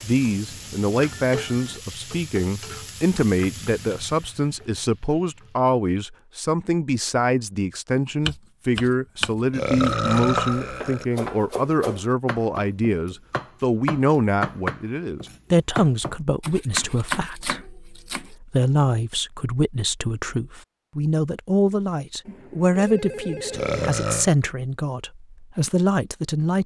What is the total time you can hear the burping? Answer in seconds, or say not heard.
2 s.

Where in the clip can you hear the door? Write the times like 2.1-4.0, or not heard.
not heard.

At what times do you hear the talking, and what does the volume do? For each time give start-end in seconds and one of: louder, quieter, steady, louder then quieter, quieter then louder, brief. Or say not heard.
0.0-26.6 steady.